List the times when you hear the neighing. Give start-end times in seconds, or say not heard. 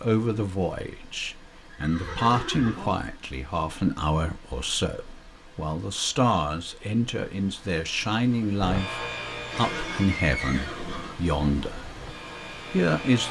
1.7-2.9, 9.5-11.2.